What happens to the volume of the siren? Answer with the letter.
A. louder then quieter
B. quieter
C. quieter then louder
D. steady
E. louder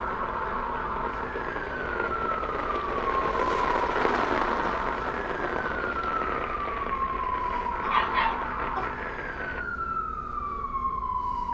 D.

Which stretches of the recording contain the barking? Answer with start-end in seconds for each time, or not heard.
7.8-8.8.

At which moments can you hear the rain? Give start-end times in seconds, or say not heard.
0.0-9.7.